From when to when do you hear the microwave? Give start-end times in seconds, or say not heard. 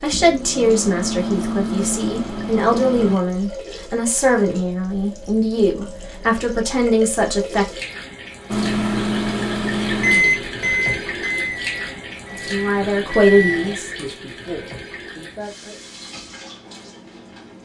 0.0-3.2, 8.5-13.8.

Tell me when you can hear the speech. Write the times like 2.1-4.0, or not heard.
0.0-7.7, 12.3-15.8.